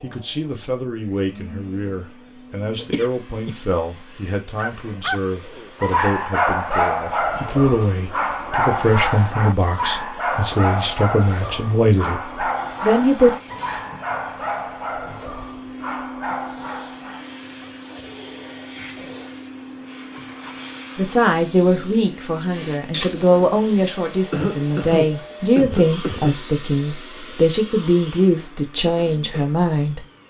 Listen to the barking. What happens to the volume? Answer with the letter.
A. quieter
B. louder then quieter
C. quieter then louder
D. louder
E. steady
A.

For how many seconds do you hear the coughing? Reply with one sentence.
You can hear the coughing for 3 seconds altogether.